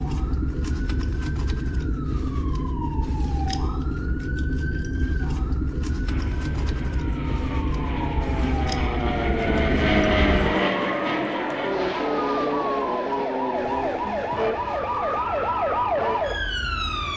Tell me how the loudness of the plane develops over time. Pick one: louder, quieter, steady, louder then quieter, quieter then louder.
louder then quieter.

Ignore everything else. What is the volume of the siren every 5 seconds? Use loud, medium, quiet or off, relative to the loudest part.
medium, medium, loud, loud.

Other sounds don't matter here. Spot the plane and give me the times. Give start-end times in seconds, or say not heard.
6.0-17.1.